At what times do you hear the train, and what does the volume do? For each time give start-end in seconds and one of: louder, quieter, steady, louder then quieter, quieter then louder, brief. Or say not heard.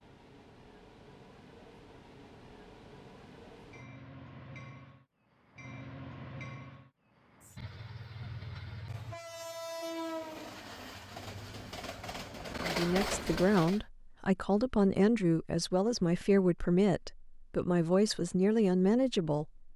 0.0-13.8 louder.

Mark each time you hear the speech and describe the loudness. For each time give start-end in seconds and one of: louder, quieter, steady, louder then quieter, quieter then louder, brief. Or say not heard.
12.6-19.7 steady.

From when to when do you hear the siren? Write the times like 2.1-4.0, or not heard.
not heard.